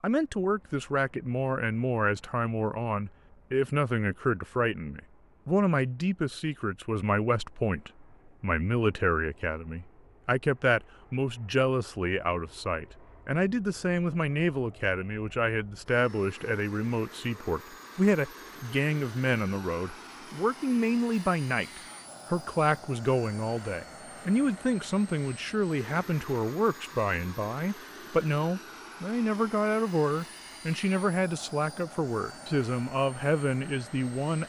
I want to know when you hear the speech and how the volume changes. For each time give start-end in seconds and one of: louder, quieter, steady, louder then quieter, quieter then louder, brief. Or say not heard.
0.0-34.4 steady.